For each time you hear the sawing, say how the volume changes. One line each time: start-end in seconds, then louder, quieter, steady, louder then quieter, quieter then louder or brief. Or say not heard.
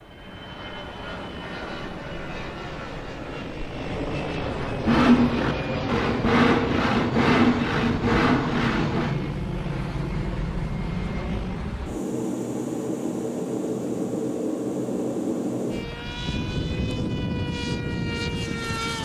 4.7-9.2 steady.